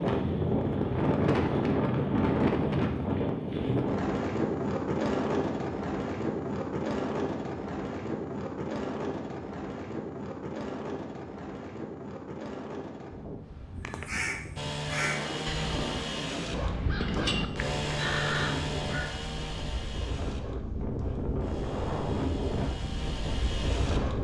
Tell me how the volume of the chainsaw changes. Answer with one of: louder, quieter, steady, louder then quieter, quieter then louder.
quieter then louder.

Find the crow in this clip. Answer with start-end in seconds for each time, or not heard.
13.8-19.1.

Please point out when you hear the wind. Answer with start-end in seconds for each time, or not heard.
0.0-24.1.